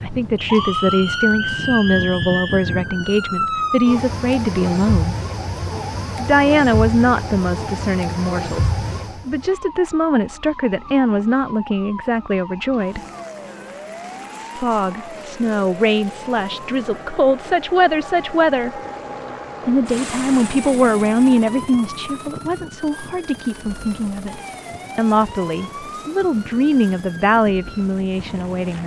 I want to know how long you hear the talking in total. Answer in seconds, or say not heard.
25 s.